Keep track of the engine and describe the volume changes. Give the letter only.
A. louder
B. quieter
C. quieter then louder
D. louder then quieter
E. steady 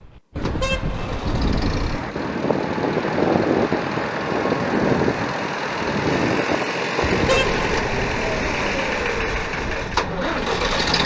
A.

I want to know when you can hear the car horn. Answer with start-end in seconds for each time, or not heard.
0.3-2.4, 7.0-7.6.